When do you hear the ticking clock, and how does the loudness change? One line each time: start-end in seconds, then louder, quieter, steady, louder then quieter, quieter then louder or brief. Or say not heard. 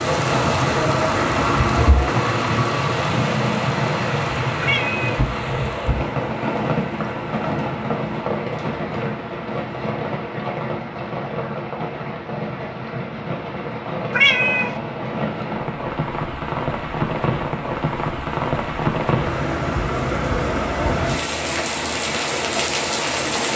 not heard.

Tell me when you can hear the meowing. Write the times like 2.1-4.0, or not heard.
4.6-5.1, 14.1-14.8.